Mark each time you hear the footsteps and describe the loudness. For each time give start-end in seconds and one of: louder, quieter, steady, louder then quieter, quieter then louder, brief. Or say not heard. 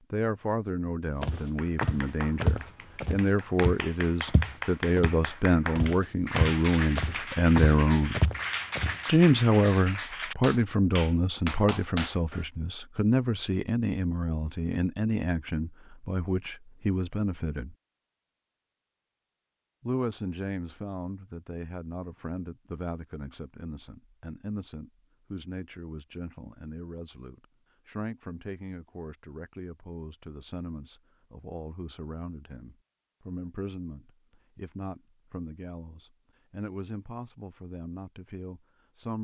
1.2-8.9 quieter then louder.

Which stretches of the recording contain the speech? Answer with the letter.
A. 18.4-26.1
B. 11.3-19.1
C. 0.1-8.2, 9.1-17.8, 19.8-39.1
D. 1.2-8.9
C.